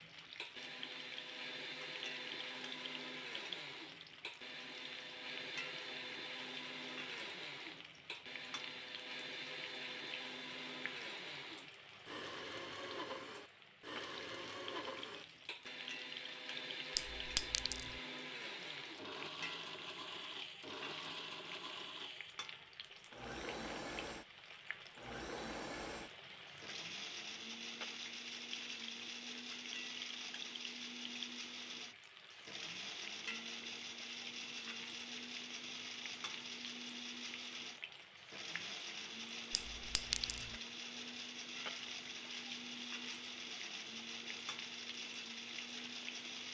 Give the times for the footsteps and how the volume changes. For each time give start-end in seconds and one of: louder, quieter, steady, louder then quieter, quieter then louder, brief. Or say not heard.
not heard.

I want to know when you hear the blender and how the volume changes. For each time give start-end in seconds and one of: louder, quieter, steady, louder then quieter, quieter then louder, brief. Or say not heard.
0.0-46.4 steady.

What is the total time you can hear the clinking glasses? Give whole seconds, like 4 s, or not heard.
2 s.